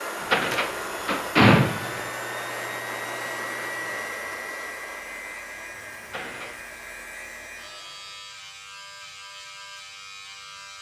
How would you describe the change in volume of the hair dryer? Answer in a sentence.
The loudness of the hair dryer goes down.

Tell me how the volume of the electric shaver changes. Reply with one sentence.
The volume of the electric shaver goes up.